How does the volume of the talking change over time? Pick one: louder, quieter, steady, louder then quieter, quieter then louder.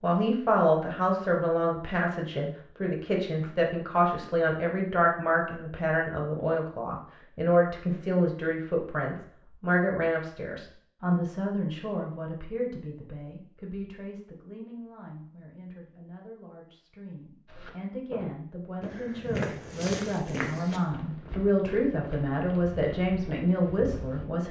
quieter then louder.